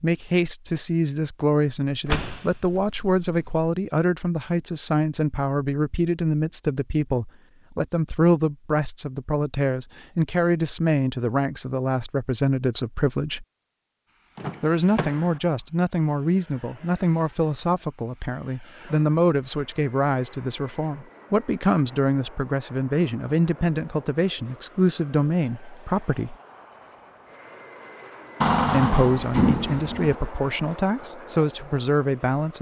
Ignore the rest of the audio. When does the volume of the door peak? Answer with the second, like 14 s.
29 s.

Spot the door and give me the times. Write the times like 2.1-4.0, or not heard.
2.0-3.6, 14.3-15.4, 28.4-30.1.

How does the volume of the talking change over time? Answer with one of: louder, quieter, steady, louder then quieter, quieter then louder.
steady.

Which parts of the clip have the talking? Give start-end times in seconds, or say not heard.
0.0-13.4, 14.6-26.4, 28.7-32.5.